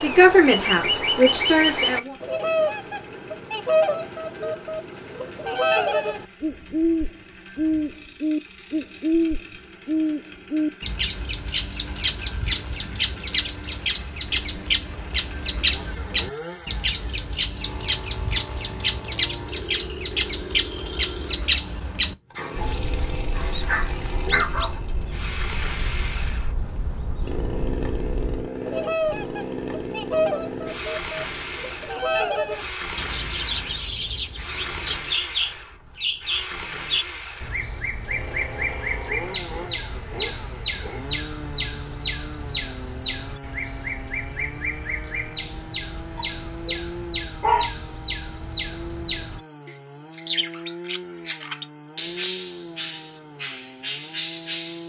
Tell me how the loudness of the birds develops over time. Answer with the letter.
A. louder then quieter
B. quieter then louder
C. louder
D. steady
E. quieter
E.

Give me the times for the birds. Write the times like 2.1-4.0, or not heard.
0.0-54.8.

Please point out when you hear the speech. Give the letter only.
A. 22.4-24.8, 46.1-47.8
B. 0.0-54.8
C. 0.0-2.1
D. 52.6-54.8
C.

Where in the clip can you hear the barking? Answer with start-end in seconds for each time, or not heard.
22.4-24.8, 46.1-47.8.